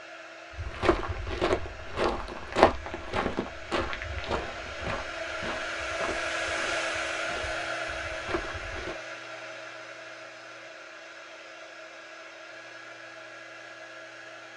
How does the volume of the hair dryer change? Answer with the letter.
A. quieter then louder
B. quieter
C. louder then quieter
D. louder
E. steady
C.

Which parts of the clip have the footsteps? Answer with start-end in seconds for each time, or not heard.
0.5-8.9.